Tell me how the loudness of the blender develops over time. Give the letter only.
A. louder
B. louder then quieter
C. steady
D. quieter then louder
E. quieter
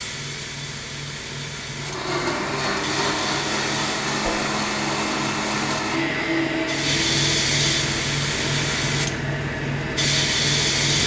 E.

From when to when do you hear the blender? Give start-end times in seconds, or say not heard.
1.7-11.0.